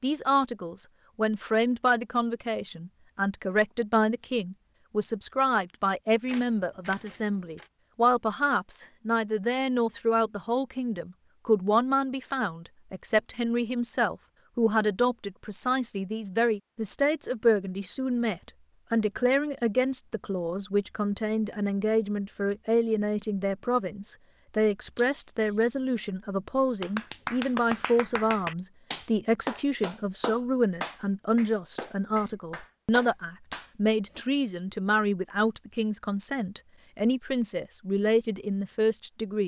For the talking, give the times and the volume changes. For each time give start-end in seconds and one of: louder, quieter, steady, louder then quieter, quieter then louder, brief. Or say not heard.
0.0-39.4 steady.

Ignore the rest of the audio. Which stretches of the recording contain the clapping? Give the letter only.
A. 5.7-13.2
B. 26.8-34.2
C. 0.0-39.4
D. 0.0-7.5
B.